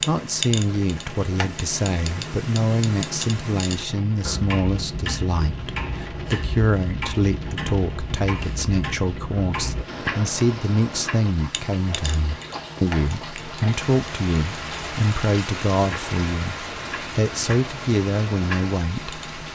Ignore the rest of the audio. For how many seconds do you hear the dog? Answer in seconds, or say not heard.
not heard.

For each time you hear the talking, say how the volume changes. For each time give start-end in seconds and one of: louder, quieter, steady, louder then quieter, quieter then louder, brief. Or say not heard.
0.1-19.5 steady.